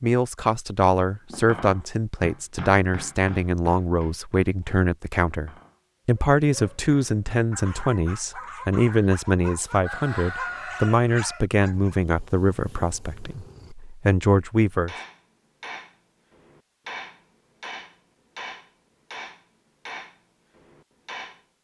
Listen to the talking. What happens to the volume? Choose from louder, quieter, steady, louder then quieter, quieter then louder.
steady.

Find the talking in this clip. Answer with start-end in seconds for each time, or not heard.
0.0-14.9.